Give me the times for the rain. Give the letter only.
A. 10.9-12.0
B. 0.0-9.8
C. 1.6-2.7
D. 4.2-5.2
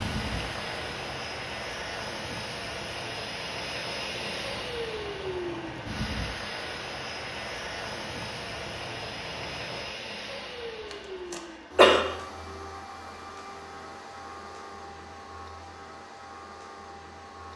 B.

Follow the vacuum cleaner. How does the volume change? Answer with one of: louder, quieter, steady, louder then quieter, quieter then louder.
quieter.